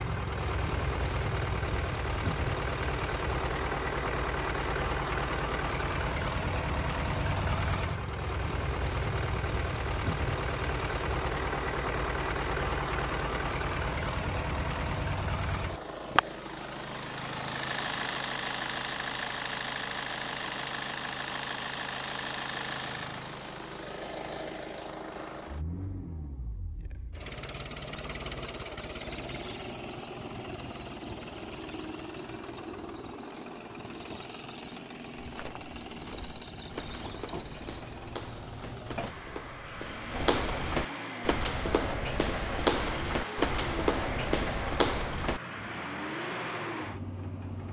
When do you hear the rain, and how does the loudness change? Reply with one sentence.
You can't hear the rain here.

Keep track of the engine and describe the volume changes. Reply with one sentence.
The volume of the engine goes down.